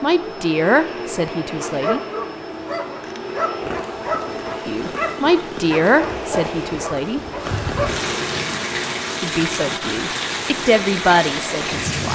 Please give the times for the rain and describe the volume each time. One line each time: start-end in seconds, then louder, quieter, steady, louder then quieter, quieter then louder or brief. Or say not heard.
3.6-12.0 louder.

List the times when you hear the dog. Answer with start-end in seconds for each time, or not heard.
1.4-7.9.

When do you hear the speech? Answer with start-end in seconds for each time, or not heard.
0.0-2.0, 4.7-7.2, 9.2-12.0.